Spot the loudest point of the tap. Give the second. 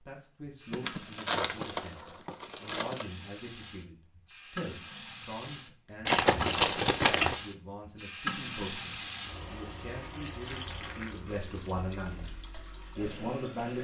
9 s.